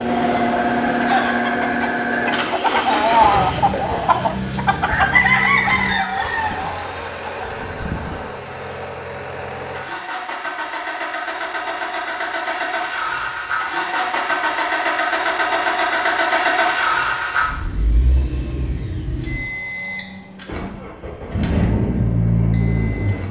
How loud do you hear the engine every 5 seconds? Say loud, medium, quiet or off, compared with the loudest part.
loud, medium, loud, loud, loud.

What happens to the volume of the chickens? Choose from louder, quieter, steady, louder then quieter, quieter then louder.
louder then quieter.